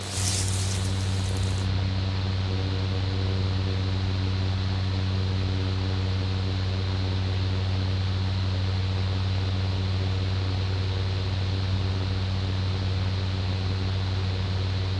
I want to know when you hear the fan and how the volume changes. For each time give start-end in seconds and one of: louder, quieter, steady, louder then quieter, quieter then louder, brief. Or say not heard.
0.0-14.9 steady.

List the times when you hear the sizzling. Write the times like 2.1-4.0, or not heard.
0.0-1.7.